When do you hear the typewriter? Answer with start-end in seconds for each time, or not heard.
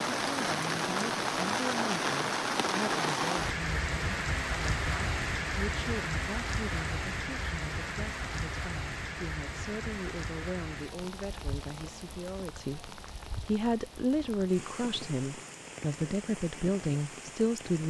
not heard.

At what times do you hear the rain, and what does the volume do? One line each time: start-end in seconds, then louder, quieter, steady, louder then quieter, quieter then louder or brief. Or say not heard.
0.0-17.8 quieter.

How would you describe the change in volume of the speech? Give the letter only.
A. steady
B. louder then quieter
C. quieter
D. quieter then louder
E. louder
E.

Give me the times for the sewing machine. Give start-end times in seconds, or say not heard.
not heard.